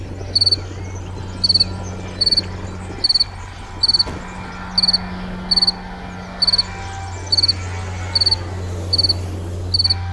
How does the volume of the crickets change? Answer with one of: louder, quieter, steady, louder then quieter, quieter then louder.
steady.